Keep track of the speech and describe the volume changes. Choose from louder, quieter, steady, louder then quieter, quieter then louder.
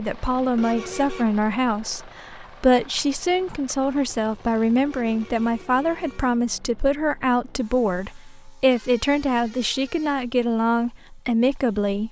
steady.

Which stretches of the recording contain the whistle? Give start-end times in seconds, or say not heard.
not heard.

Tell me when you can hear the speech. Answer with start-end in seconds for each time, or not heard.
0.0-12.0.